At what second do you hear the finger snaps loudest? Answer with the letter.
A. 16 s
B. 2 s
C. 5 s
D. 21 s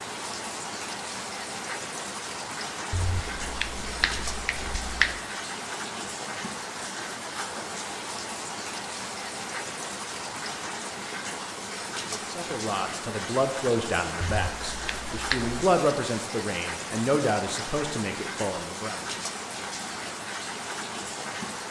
C.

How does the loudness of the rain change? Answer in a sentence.
The volume of the rain stays about the same.